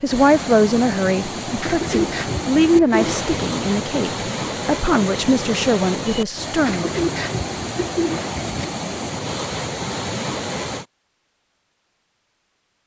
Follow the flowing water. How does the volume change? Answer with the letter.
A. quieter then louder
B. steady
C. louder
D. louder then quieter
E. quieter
B.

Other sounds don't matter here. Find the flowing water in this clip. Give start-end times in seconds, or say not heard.
0.0-10.8.